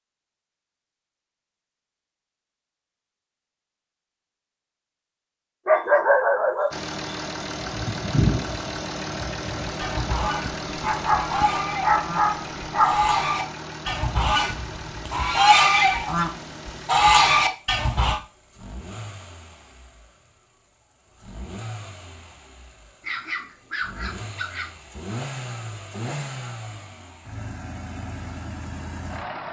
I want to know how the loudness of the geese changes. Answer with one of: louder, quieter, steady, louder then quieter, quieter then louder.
louder.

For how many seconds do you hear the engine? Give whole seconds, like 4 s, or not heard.
23 s.